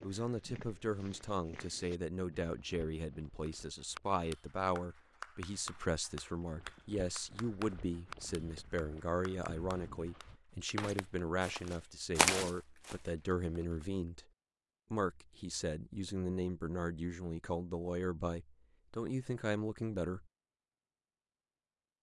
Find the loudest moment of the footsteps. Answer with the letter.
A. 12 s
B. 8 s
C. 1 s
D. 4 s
A.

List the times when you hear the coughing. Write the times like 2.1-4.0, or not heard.
not heard.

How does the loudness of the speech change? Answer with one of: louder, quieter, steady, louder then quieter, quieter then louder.
steady.